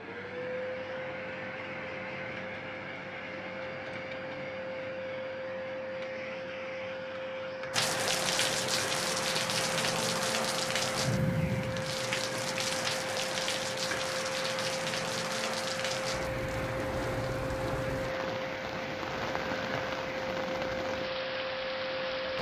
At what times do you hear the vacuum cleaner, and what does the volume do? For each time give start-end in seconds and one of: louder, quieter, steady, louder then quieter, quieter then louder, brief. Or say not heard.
0.0-22.3 steady.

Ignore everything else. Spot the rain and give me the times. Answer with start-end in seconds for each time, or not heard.
7.7-22.3.